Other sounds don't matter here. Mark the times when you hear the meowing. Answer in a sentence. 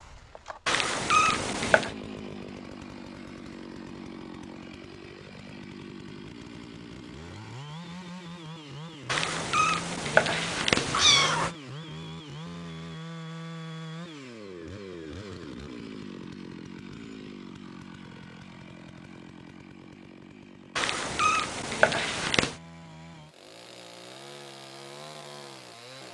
You can hear the meowing from 0.7 to 1.9 s, from 9.1 to 11.5 s and from 20.8 to 22.6 s.